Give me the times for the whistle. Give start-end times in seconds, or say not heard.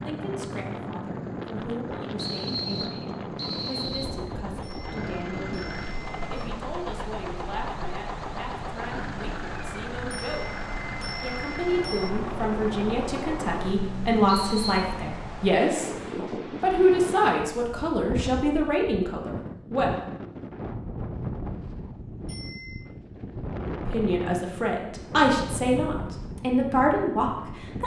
2.1-4.2, 14.2-14.8.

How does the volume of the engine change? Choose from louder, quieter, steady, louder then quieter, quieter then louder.
louder.